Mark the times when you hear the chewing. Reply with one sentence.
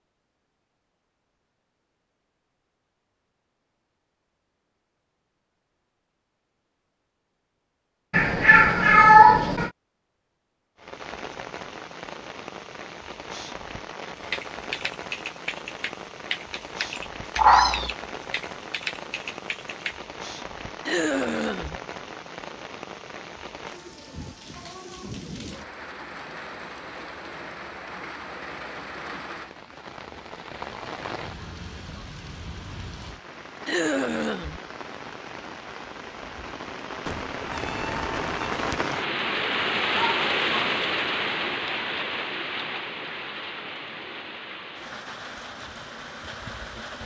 The chewing can't be heard in this clip.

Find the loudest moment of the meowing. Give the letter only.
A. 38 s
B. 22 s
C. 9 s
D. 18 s
C.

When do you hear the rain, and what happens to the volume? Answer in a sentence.
You can hear the rain from 10.8 to 47.0 s, getting louder.